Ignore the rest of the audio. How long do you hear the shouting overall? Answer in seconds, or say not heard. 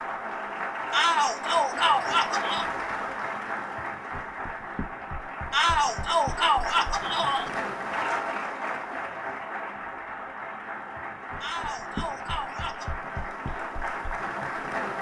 5 s.